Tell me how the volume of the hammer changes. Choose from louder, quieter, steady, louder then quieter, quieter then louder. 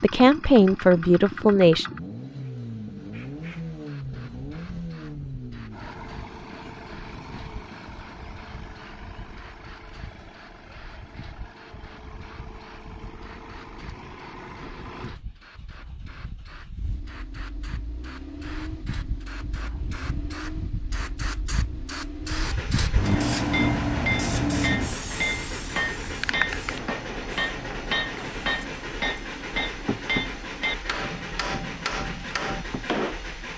steady.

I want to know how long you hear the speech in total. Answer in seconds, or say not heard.
2 s.